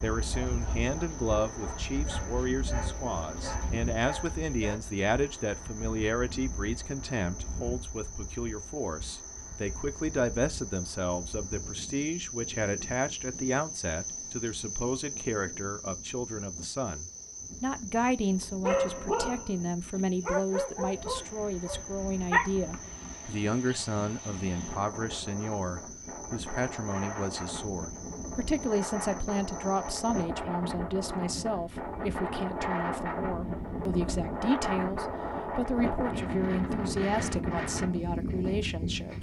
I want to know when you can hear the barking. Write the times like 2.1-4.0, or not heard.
0.2-4.8, 18.6-23.2.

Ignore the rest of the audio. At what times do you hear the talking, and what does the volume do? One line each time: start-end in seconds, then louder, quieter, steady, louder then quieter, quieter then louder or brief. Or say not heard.
0.0-39.1 steady.